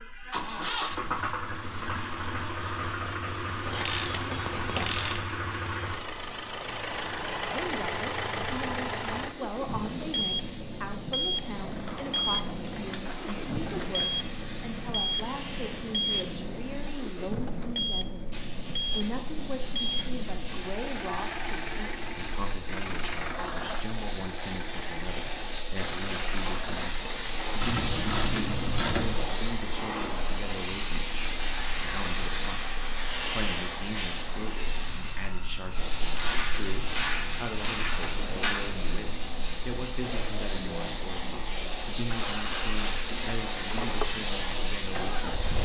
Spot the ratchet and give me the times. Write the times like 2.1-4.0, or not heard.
3.6-5.2, 11.6-14.1, 27.6-29.3, 36.1-38.7.